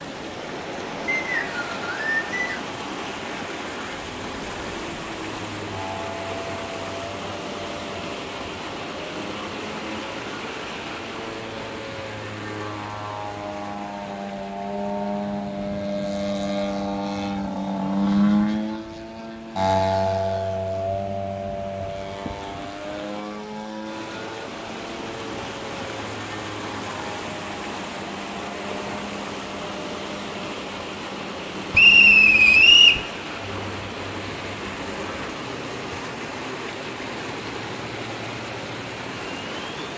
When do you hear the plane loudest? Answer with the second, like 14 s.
18 s.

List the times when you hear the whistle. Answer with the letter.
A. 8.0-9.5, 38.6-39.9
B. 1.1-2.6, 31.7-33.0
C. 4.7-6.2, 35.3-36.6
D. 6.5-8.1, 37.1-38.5
B.